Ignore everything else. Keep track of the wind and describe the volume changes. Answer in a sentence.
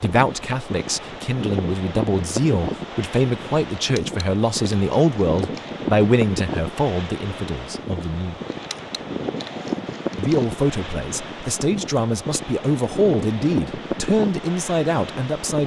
The volume of the wind stays about the same.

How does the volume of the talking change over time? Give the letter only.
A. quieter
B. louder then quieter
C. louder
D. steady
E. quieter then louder
D.